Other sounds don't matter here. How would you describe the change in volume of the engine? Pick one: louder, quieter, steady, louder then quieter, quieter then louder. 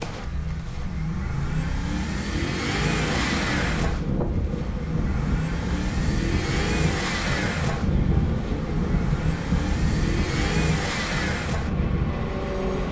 steady.